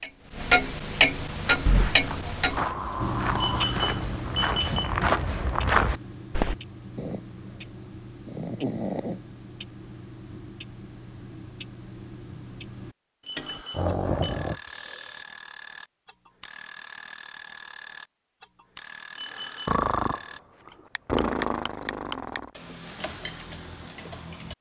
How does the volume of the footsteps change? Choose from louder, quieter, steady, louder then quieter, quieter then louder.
louder.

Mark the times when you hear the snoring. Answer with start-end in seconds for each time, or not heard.
1.6-3.6, 7.0-9.2, 13.7-15.2, 19.6-22.5.